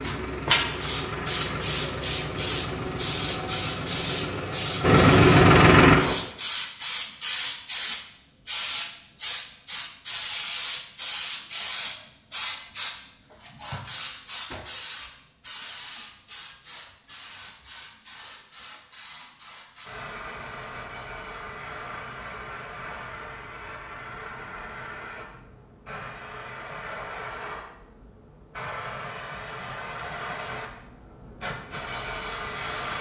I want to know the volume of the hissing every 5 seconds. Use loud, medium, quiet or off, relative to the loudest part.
loud, loud, loud, quiet, quiet, quiet, medium.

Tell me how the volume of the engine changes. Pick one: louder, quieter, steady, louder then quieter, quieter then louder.
louder.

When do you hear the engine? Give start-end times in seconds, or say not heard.
0.0-6.2.